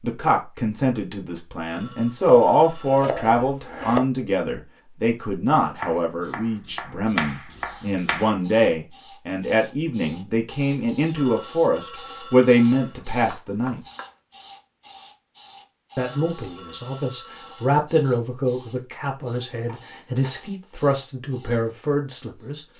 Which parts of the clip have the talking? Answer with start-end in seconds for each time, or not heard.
0.0-13.8, 15.9-22.6.